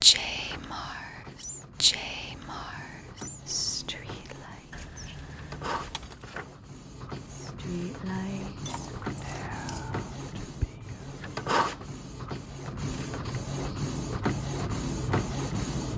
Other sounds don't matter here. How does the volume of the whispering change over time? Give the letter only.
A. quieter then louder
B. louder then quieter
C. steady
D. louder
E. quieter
E.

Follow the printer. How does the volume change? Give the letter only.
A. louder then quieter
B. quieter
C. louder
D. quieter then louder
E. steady
C.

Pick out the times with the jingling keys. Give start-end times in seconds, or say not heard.
4.7-6.2, 8.7-9.9.